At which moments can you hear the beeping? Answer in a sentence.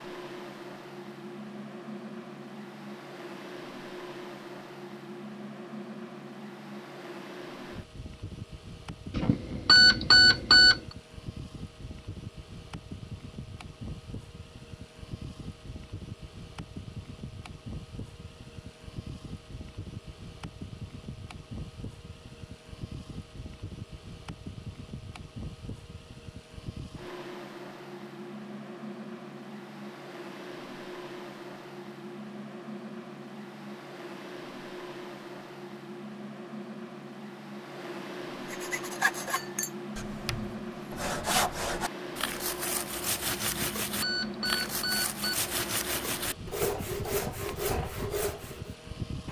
You can hear the beeping from 9.2 to 10.8 s and from 43.5 to 45.4 s.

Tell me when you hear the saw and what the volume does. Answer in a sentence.
The saw can be heard from 38.5 to 48.7 s, at a steady volume.